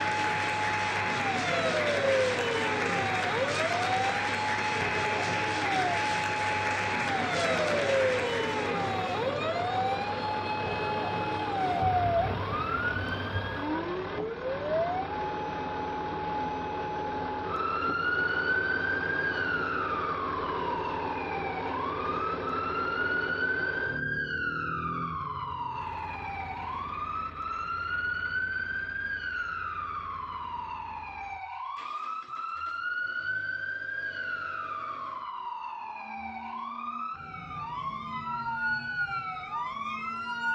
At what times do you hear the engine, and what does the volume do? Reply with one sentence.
You can hear the engine from 0.0 to 40.5 s, getting quieter.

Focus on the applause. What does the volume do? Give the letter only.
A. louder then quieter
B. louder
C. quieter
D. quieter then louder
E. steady
E.